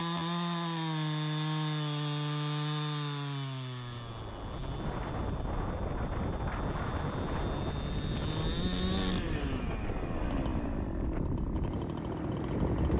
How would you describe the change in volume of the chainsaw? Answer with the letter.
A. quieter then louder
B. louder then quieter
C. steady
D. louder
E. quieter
A.